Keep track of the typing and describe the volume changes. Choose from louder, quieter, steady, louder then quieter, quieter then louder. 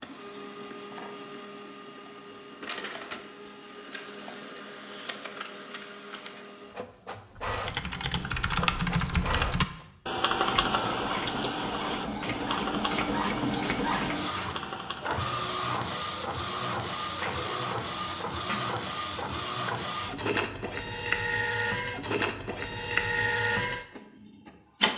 quieter.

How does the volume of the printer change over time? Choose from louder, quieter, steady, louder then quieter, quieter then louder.
louder.